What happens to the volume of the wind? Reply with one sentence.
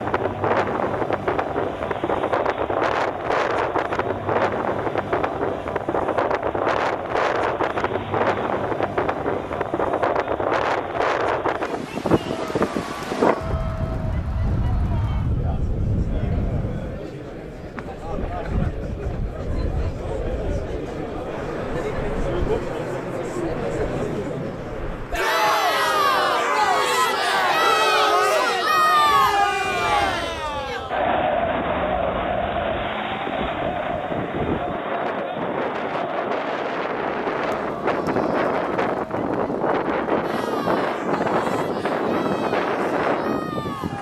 The loudness of the wind goes down, then up.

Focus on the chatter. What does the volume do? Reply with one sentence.
The volume of the chatter goes up, then down.